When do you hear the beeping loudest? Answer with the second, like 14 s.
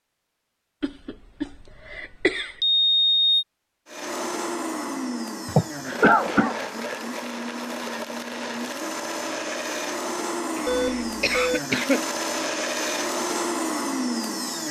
3 s.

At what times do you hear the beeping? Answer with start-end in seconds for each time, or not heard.
2.6-3.5, 10.7-11.6.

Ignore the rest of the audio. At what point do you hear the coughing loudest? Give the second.
6 s.